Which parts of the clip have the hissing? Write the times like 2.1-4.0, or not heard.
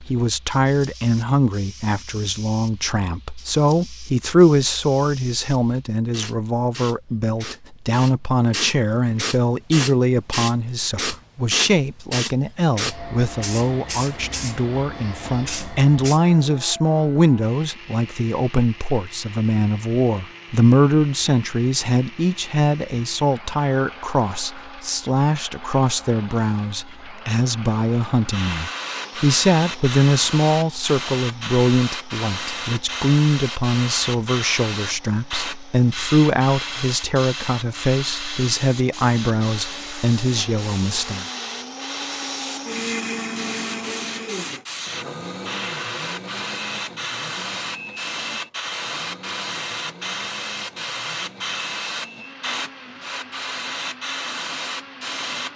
0.0-16.2, 28.3-55.5.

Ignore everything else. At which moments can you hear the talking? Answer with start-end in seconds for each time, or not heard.
0.0-41.2.